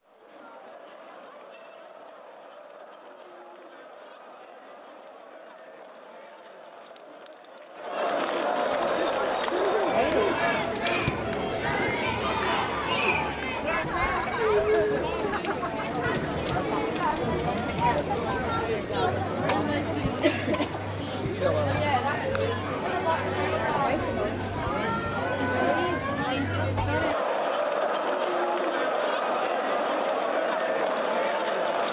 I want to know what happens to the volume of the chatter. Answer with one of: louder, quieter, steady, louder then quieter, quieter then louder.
louder.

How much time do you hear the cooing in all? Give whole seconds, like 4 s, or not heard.
2 s.